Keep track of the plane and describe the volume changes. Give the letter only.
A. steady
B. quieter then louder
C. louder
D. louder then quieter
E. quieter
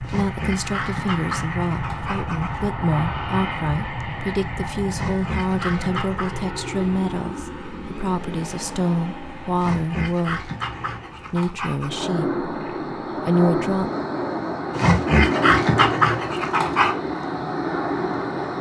B.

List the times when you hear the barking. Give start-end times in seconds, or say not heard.
0.0-2.6, 4.9-6.3, 9.6-11.9, 14.8-16.9.